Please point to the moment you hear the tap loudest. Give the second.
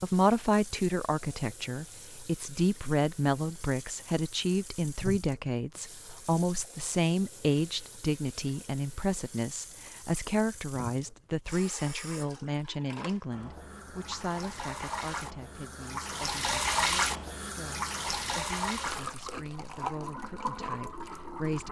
17 s.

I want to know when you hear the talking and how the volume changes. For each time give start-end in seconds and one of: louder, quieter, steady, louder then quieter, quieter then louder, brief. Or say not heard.
0.0-21.6 quieter.